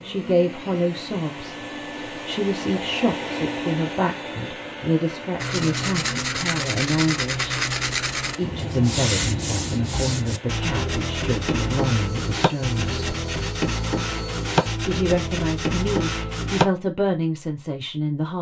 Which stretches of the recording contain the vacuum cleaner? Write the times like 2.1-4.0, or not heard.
0.0-14.8.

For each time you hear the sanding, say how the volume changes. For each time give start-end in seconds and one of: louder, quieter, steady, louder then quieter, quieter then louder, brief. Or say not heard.
5.3-16.6 steady.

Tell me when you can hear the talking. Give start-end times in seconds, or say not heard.
0.0-7.6, 8.3-13.1, 14.8-18.3.